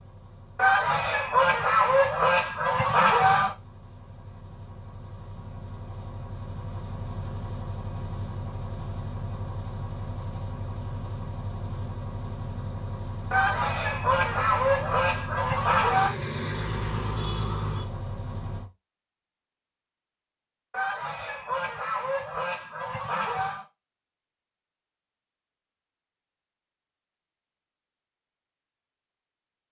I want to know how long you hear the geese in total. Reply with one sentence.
The geese can be heard for 9 seconds in total.